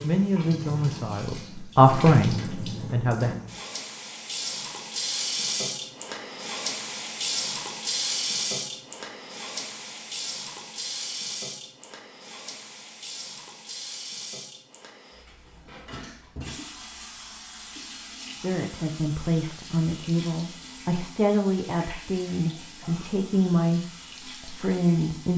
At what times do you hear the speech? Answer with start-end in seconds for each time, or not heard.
0.0-3.4, 18.4-25.3.